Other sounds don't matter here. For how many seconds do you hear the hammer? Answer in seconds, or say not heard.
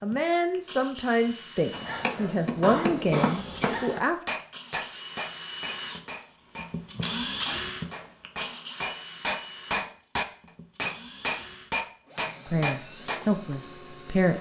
12 s.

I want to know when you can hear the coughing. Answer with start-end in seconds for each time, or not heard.
2.6-3.9.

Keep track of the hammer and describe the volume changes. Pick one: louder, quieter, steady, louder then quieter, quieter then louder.
quieter then louder.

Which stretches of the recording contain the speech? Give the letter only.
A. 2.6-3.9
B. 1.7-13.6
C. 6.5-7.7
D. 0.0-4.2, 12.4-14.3
D.